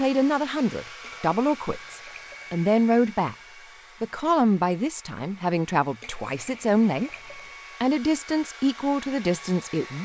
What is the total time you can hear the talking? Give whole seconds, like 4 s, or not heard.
9 s.